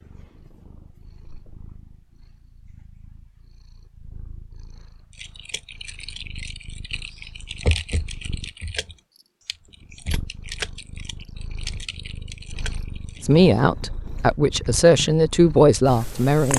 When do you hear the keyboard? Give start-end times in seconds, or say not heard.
5.2-13.4.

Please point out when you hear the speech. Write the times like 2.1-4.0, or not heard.
13.2-16.5.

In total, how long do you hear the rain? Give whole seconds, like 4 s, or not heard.
not heard.